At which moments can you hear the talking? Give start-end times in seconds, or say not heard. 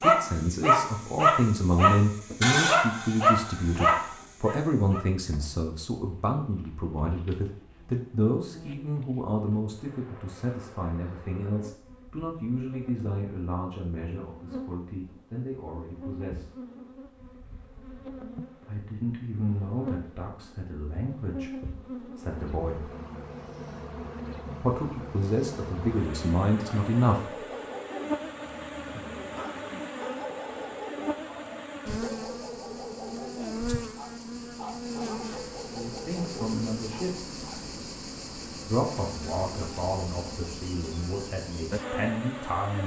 0.0-16.6, 18.6-22.9, 24.6-27.4, 35.7-37.3, 38.6-42.8.